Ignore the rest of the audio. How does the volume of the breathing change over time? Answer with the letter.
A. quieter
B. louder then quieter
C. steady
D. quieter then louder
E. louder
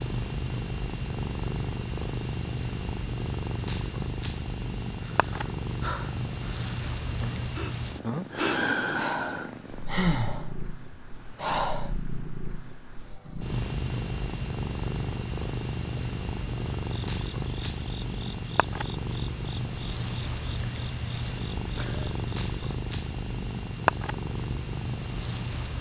B.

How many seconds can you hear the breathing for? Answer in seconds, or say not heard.
7 s.